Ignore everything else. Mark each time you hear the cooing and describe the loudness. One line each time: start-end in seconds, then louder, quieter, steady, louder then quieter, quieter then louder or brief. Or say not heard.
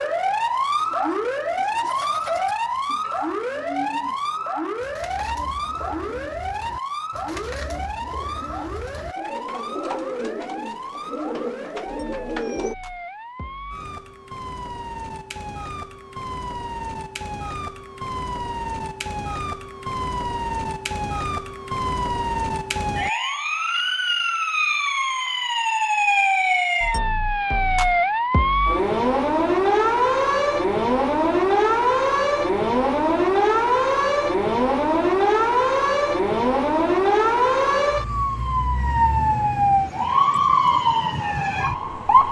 0.8-12.8 louder.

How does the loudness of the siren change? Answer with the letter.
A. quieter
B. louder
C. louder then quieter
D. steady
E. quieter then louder
E.